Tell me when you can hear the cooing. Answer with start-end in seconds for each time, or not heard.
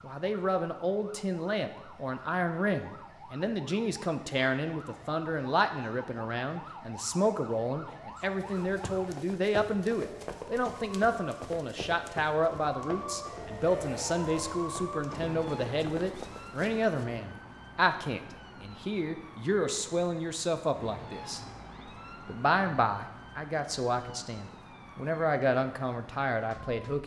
not heard.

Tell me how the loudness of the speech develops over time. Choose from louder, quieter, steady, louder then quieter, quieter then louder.
steady.